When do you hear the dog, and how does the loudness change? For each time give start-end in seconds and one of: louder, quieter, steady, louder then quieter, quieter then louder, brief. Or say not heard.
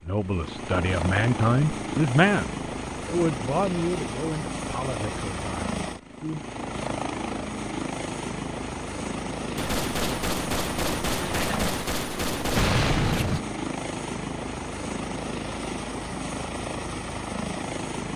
not heard.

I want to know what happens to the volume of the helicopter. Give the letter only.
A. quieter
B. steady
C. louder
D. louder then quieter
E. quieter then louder
B.